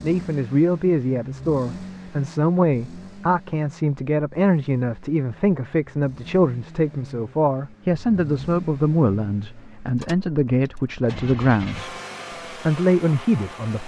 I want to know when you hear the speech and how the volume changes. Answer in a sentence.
The speech can be heard from 0.0 to 11.9 s, at a steady volume; and briefly from 12.7 to 13.8 s.